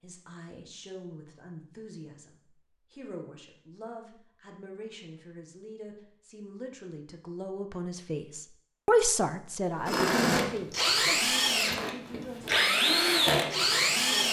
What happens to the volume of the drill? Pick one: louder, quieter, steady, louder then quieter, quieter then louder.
quieter then louder.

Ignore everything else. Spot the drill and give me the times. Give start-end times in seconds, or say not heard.
9.8-14.2.